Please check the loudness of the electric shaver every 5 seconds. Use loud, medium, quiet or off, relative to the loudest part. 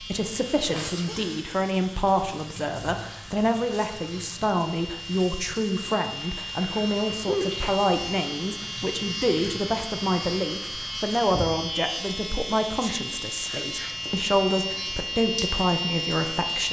quiet, medium, loud, loud.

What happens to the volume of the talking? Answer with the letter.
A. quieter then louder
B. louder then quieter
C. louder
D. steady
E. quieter
D.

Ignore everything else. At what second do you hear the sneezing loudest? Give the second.
7 s.